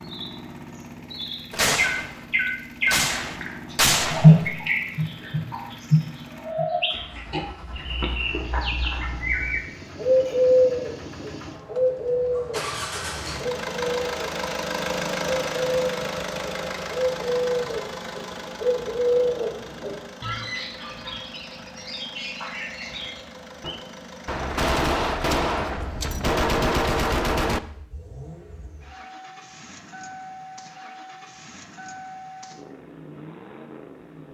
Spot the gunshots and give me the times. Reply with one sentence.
You can hear the gunshots from 1.5 to 2.0 s, from 2.9 to 4.5 s and from 24.2 to 27.6 s.